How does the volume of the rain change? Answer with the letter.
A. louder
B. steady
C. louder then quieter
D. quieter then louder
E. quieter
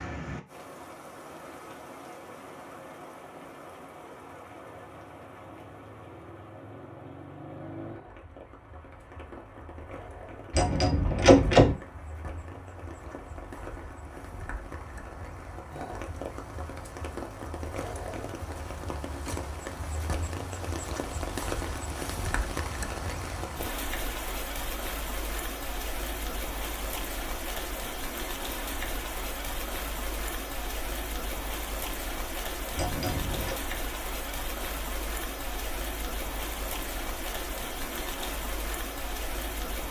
A.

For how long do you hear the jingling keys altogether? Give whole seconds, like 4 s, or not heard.
2 s.